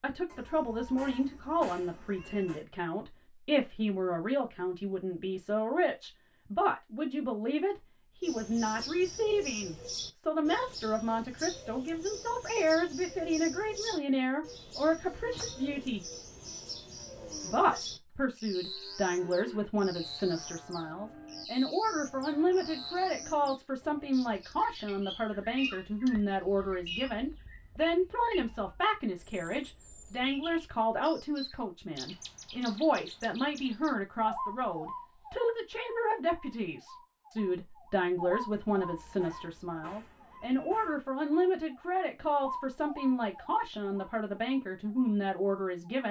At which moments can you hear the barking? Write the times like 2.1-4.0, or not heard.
not heard.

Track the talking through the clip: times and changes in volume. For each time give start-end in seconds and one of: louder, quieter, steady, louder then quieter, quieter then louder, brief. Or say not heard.
0.0-16.1 steady
17.4-46.0 steady.